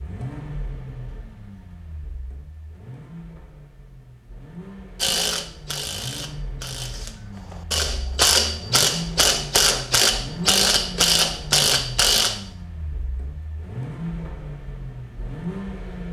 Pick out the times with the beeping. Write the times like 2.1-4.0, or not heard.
not heard.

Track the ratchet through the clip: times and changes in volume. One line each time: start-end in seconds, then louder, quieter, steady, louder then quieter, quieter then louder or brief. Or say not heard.
5.0-12.4 louder.